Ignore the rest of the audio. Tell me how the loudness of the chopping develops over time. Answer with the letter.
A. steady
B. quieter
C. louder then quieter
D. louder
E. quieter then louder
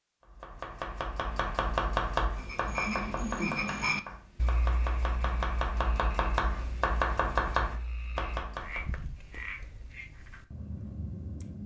E.